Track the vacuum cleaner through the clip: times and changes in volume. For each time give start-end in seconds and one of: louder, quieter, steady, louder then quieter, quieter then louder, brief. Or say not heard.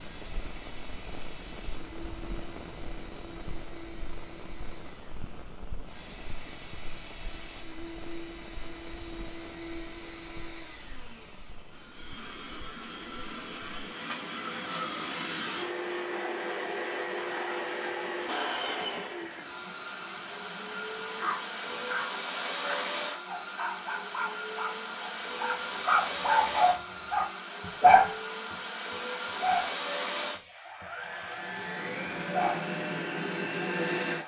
0.0-34.2 louder.